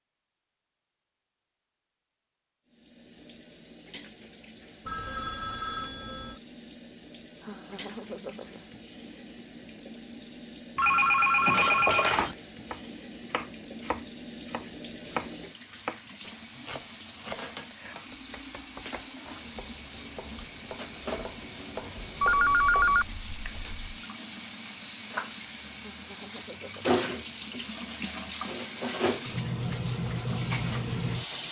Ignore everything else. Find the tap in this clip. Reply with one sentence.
The tap can be heard from 2.6 to 31.4 s.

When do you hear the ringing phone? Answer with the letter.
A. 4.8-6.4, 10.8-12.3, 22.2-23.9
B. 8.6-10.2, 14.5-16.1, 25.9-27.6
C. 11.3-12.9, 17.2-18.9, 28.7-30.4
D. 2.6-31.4
A.